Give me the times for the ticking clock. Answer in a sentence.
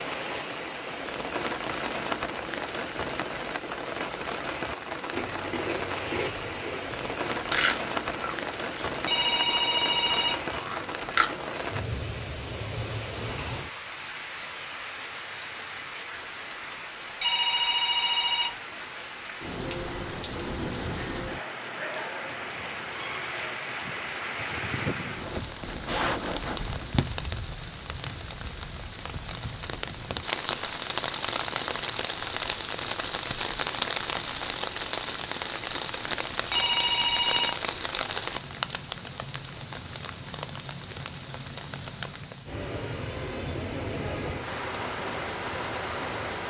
The ticking clock can't be heard in this clip.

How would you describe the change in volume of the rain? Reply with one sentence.
The volume of the rain stays about the same.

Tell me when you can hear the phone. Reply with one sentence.
The phone can be heard from 9.1 to 10.4 s, from 17.2 to 18.6 s and from 36.5 to 37.5 s.